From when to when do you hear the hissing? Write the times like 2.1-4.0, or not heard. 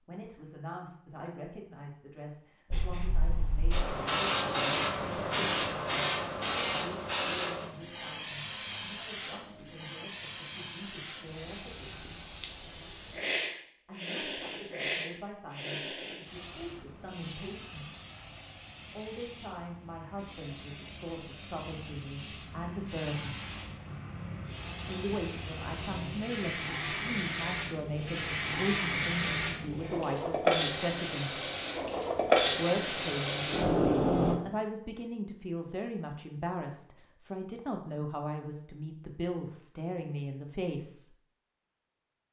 2.7-34.4.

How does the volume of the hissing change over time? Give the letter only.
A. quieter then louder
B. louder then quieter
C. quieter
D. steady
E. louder
A.